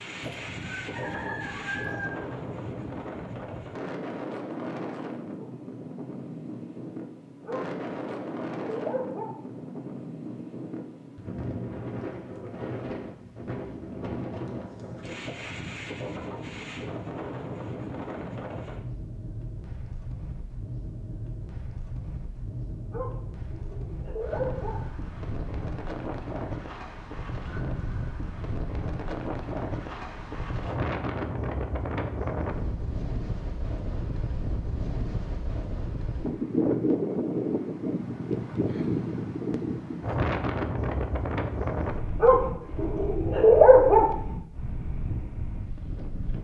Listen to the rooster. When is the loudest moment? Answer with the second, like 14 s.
2 s.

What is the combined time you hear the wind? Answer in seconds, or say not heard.
46 s.